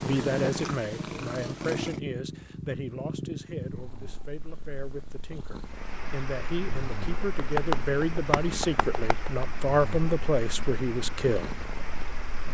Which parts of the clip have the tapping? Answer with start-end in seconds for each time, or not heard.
7.3-9.4.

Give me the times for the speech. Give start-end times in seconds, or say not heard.
0.0-11.6.